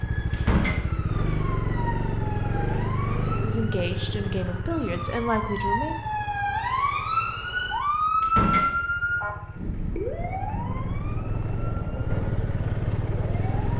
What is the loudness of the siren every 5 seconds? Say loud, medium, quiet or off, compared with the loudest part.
quiet, loud, medium.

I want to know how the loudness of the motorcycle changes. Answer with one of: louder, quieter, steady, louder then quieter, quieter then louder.
quieter then louder.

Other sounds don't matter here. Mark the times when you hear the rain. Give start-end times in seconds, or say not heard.
not heard.